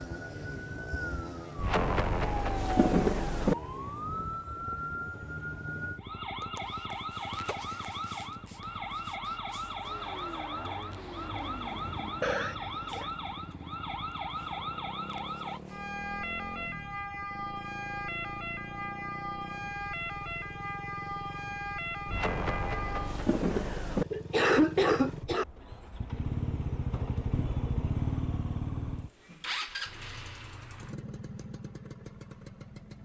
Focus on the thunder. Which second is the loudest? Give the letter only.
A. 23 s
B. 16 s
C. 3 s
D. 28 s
C.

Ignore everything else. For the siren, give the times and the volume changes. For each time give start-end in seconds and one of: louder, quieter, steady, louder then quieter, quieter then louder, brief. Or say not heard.
0.0-23.2 steady.